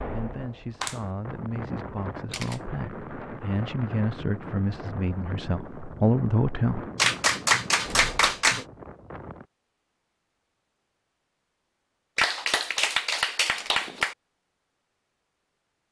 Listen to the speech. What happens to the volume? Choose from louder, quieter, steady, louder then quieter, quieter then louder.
louder.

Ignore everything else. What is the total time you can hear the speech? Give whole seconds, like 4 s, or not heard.
7 s.